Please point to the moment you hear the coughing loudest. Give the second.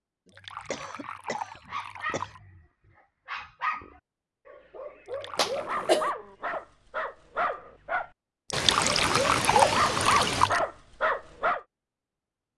6 s.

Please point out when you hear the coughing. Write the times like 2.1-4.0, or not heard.
0.7-2.4, 5.3-6.1, 8.5-10.5.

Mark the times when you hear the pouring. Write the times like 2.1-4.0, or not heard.
0.2-2.4, 5.0-6.0, 8.5-10.6.